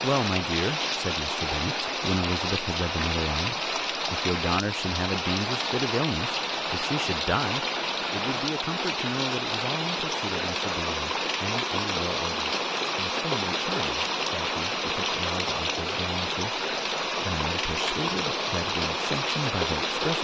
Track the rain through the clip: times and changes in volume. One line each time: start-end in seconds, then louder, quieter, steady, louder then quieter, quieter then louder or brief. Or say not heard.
0.0-20.2 steady.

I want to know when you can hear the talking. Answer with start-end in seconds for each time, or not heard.
0.0-20.2.